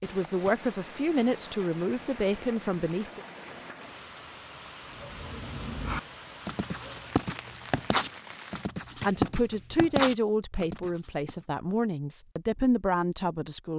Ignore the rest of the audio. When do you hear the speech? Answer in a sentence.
The speech can be heard from 0.0 to 3.2 s and from 9.0 to 13.7 s.